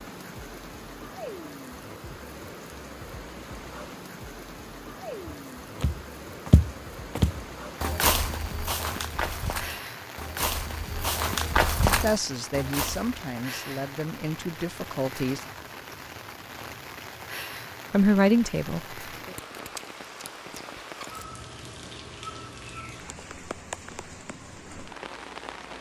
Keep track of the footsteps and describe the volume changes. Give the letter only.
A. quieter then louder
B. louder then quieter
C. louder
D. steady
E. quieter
A.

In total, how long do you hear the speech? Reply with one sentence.
The speech can be heard for 5 seconds in total.